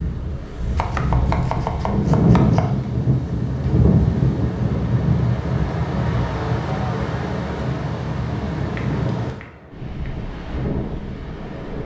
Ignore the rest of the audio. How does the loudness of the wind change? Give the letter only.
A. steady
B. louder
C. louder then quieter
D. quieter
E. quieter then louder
D.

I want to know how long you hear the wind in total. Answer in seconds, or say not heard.
12 s.